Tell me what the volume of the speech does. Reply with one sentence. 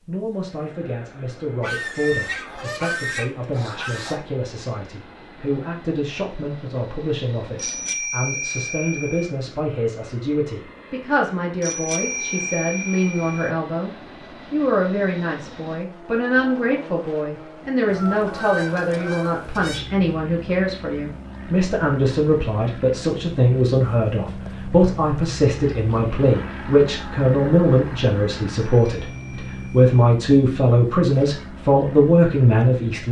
The volume of the speech goes up.